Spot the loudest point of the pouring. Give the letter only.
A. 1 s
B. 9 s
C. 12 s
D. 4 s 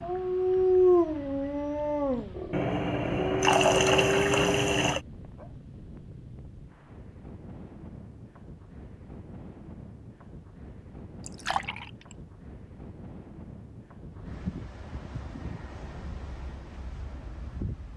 D.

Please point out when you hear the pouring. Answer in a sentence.
You can hear the pouring from 2.5 to 5.0 s and from 11.2 to 12.2 s.